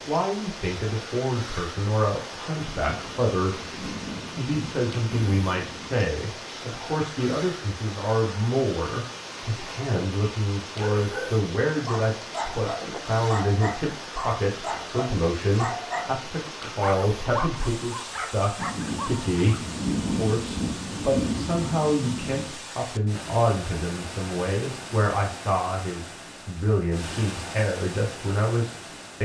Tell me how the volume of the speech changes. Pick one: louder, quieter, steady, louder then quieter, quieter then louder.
steady.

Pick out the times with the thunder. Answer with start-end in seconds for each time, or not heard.
2.5-6.0, 18.6-22.6.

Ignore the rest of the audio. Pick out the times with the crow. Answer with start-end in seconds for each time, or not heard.
not heard.